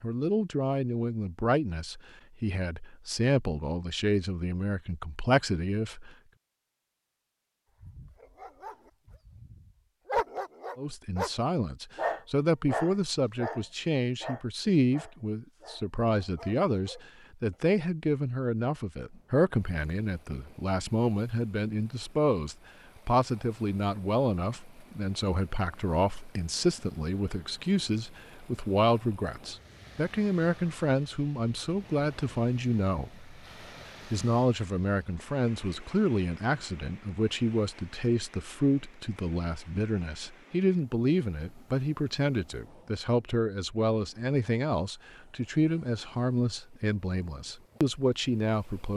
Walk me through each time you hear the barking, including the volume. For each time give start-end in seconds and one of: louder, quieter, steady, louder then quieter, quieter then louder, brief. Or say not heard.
7.8-17.7 louder then quieter.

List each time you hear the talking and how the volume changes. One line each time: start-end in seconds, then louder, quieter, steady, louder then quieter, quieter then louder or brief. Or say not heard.
0.0-6.1 steady
10.8-33.4 steady
34.0-48.9 steady.